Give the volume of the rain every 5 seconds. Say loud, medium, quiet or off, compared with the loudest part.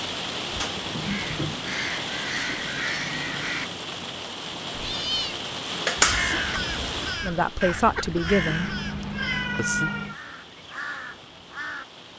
loud, loud, quiet.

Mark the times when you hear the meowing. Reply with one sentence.
The meowing can be heard from 0.5 to 1.6 s, from 4.7 to 5.3 s and from 8.3 to 10.2 s.